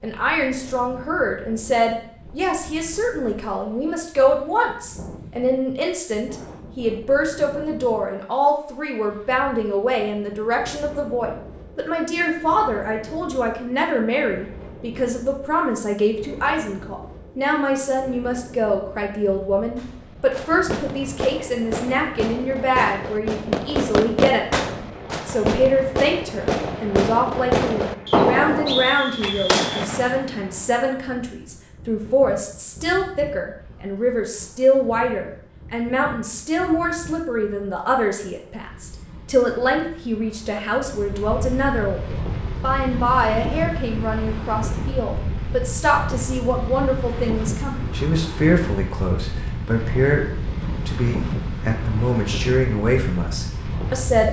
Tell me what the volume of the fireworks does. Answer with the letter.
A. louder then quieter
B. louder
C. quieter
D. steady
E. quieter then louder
B.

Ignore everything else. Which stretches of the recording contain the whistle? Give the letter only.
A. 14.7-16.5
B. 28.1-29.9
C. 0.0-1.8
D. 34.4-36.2
B.